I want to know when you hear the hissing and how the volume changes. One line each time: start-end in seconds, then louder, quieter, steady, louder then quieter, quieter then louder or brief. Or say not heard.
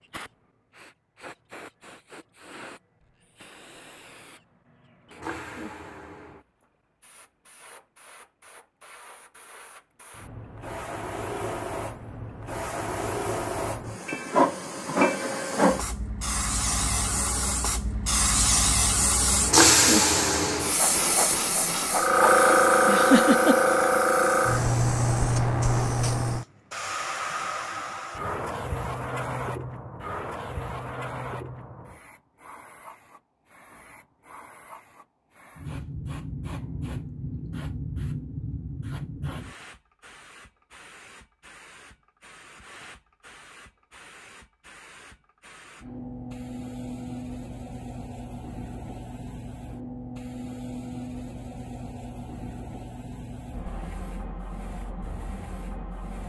0.0-56.2 louder then quieter.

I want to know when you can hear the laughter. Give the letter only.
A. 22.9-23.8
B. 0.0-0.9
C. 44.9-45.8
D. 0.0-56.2
A.